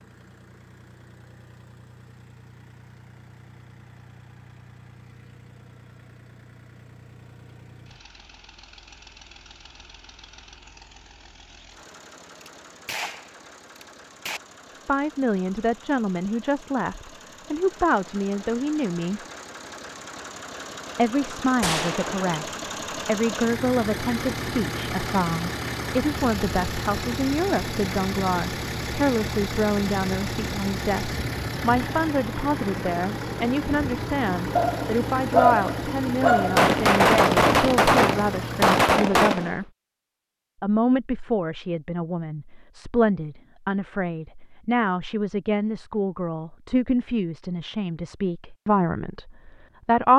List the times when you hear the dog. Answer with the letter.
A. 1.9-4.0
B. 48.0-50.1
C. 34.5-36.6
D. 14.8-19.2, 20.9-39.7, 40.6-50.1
C.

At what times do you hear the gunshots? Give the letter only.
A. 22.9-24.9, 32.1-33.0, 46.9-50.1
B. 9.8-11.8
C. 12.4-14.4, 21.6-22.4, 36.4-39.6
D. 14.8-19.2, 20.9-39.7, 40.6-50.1
C.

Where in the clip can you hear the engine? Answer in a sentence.
You can hear the engine from 0.0 to 38.8 s.